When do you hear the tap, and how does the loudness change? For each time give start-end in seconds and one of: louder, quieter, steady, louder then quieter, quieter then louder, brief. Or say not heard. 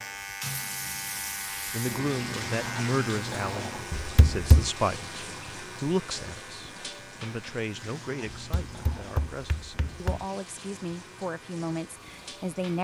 0.0-12.7 quieter.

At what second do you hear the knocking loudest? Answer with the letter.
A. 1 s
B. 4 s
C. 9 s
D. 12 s
B.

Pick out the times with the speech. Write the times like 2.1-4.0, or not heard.
1.7-12.7.